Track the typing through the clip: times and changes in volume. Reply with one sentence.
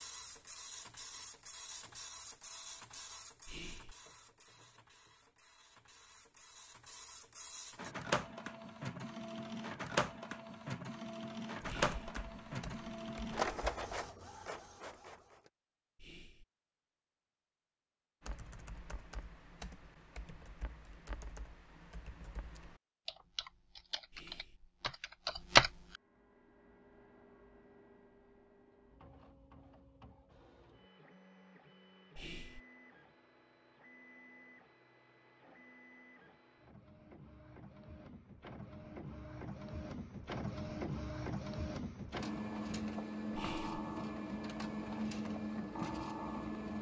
The typing can be heard briefly from 11.7 to 14.1 s; and from 18.2 to 25.7 s, getting louder.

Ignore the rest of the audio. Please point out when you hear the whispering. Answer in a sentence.
You can hear the whispering from 3.5 to 4.0 s, from 11.7 to 12.1 s, from 15.9 to 16.4 s, from 24.1 to 24.6 s, from 32.1 to 32.6 s and from 43.4 to 43.8 s.